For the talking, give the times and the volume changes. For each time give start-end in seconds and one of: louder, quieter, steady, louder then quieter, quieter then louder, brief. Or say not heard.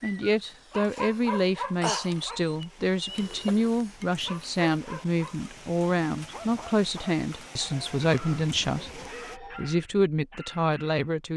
0.0-11.3 steady.